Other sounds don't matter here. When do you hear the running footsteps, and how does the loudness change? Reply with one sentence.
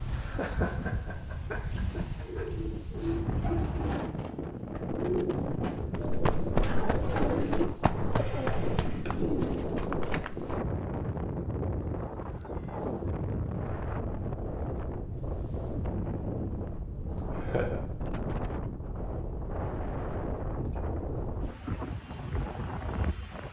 You can hear the running footsteps from 4.7 to 10.6 s, getting louder then quieter.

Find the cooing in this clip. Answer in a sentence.
The cooing can be heard from 2.2 to 9.7 s.